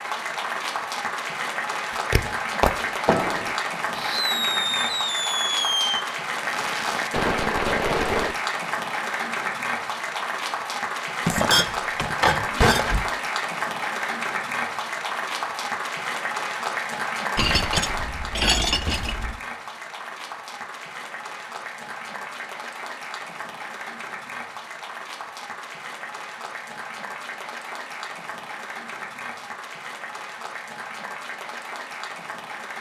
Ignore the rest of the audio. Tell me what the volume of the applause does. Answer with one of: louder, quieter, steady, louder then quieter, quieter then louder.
quieter.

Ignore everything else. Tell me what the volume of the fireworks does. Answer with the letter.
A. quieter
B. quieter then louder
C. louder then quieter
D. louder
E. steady
E.